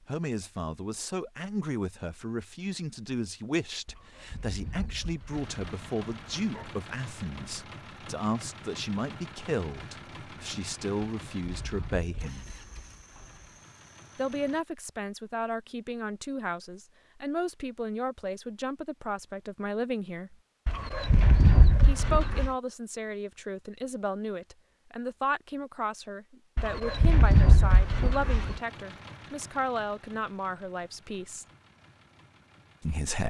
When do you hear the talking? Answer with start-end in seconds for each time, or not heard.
0.0-12.4, 14.2-20.4, 21.9-31.4, 32.8-33.2.